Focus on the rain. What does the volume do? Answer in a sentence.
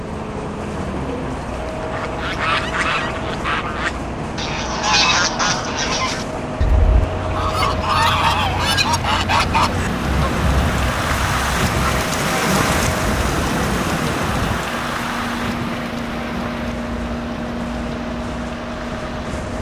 The volume of the rain goes up, then down.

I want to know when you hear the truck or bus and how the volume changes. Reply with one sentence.
The truck or bus can be heard from 0.0 to 19.5 s, at a steady volume.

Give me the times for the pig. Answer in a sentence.
You can't hear the pig here.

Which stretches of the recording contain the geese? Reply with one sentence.
You can hear the geese from 1.8 to 12.1 s.